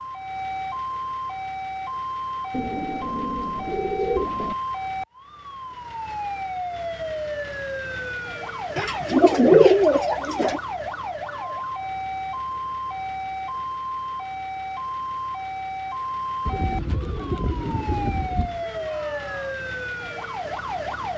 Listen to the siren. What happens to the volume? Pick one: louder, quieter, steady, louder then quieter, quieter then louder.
steady.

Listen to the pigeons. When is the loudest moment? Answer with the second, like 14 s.
10 s.